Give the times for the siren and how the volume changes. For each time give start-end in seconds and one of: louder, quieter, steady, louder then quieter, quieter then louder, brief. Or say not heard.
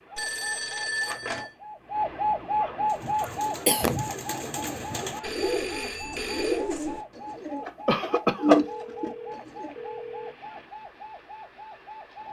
0.0-12.2 quieter.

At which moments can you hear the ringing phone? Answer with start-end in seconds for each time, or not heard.
0.1-1.5, 5.2-6.7, 8.6-10.3.